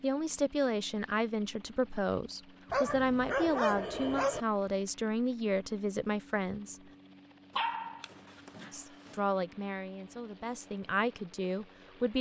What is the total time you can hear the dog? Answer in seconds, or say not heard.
3 s.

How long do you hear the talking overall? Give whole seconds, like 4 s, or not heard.
10 s.